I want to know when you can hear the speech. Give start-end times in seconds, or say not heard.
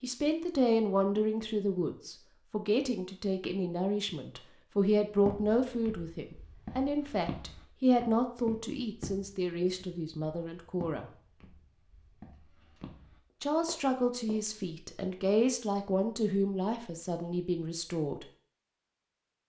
0.0-11.1, 13.4-18.2.